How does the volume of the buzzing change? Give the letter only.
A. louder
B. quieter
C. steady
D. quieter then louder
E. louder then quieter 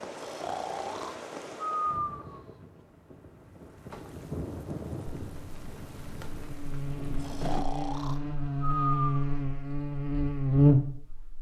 A.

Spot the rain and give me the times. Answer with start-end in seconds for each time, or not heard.
0.0-7.7.